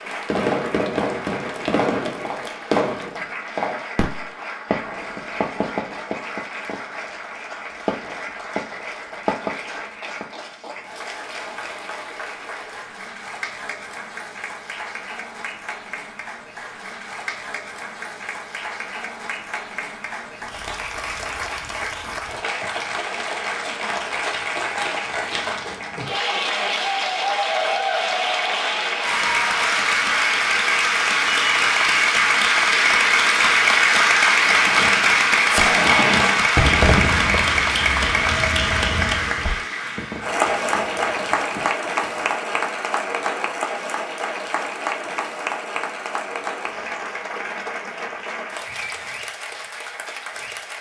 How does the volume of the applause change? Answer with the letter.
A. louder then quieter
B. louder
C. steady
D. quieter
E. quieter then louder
A.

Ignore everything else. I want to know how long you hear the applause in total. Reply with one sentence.
You can hear the applause for 51 seconds altogether.